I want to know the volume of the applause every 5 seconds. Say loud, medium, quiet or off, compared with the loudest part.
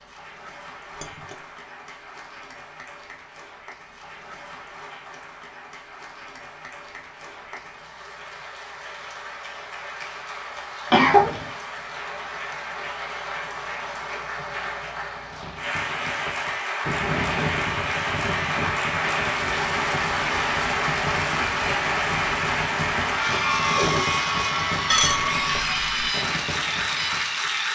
quiet, quiet, medium, loud, loud, loud.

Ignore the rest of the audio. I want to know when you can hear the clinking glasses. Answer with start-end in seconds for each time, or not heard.
0.9-1.4, 24.9-26.1.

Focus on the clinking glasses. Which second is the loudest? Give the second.
25 s.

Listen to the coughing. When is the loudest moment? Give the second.
11 s.